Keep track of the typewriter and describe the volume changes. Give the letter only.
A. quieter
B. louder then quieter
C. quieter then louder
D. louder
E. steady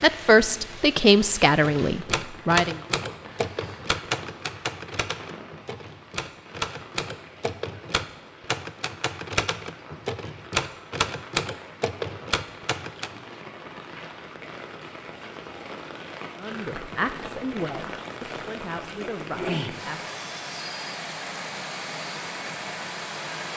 C.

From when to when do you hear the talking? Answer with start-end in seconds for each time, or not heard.
0.0-2.8, 16.4-20.0.